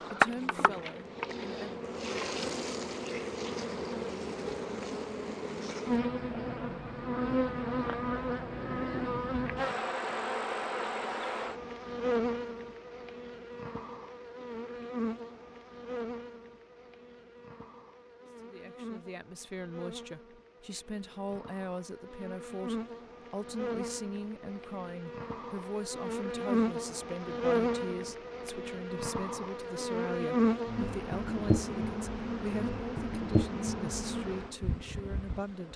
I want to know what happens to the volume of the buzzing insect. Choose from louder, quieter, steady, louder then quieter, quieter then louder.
quieter then louder.